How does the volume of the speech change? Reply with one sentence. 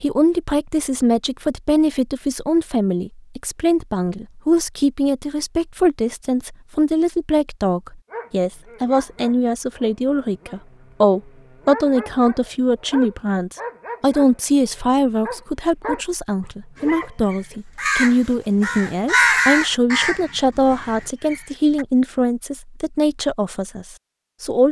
The volume of the speech stays about the same.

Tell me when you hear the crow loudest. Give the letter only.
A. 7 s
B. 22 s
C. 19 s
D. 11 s
C.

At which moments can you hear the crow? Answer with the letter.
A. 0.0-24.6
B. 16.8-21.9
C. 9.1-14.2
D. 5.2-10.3
B.